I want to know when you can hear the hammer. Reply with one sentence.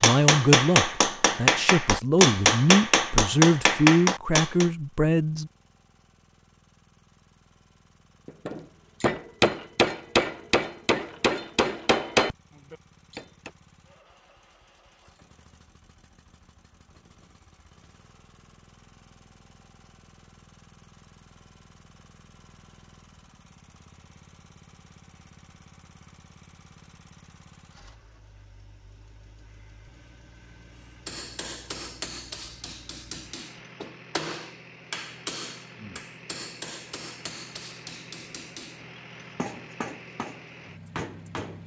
The hammer can be heard from 0.0 to 4.7 s, from 8.2 to 13.5 s and from 31.1 to 41.6 s.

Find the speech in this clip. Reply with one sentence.
You can hear the speech from 0.0 to 5.5 s.